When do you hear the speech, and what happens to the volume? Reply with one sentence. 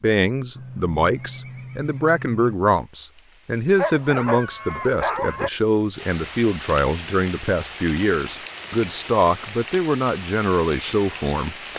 The speech can be heard from 0.0 to 11.6 s, at a steady volume.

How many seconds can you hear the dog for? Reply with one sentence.
The dog can be heard for 2 seconds in total.